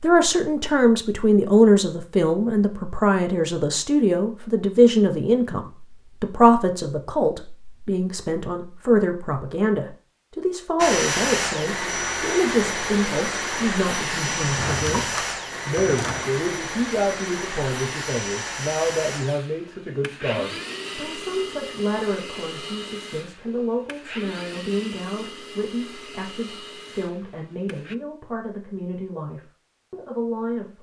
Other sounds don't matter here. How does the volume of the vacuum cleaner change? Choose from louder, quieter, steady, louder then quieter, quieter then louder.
quieter.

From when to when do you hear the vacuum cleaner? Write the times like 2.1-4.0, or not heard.
10.8-27.9.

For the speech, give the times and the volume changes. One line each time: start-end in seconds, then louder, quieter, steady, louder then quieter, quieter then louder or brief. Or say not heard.
0.0-30.7 quieter.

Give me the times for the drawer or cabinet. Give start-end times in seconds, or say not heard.
14.3-16.3.